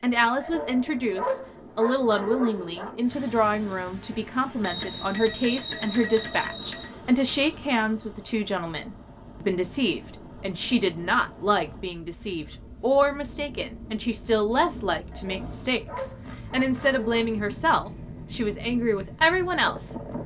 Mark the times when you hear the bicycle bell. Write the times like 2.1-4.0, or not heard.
4.6-7.0.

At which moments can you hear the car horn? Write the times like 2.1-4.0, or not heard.
not heard.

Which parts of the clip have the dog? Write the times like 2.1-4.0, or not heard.
0.4-3.0, 15.1-17.3.